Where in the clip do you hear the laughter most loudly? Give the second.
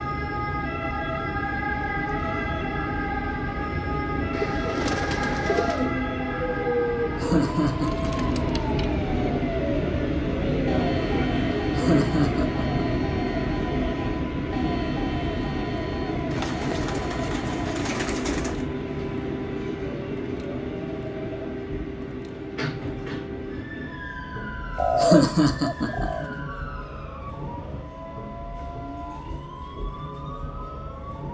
25 s.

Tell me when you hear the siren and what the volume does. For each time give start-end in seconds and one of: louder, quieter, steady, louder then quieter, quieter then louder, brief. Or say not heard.
0.0-31.1 quieter.